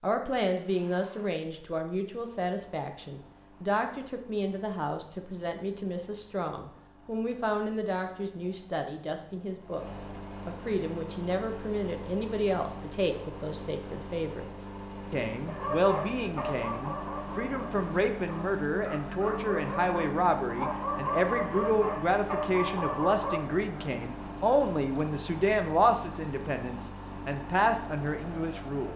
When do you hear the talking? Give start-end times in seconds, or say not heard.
0.0-28.9.